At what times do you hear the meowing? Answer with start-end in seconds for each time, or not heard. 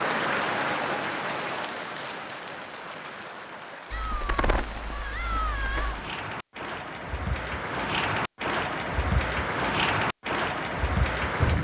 3.9-6.1.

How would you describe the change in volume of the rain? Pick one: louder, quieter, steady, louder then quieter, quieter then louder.
quieter then louder.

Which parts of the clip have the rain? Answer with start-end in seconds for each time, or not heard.
0.0-11.5.